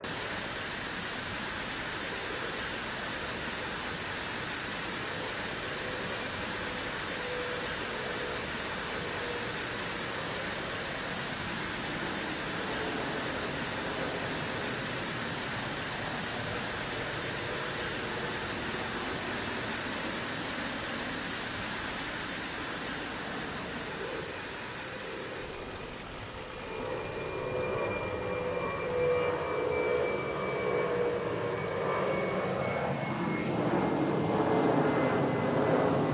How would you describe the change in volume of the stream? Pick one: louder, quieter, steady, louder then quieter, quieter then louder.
quieter.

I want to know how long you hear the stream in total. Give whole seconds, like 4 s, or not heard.
36 s.